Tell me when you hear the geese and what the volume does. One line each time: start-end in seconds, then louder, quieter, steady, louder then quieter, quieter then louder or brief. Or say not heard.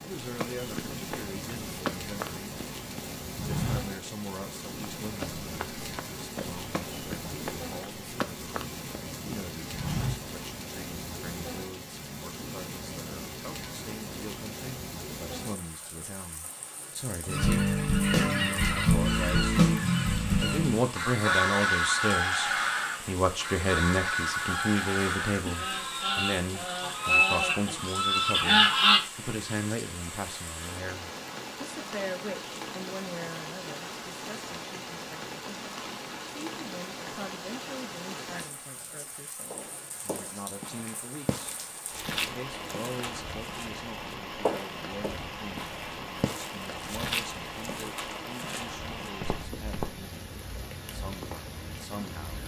17.2-29.1 quieter then louder.